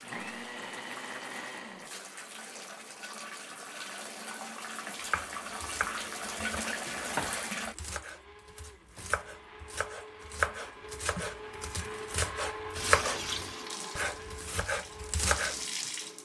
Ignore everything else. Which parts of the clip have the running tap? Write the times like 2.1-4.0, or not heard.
0.0-7.8, 12.8-16.1.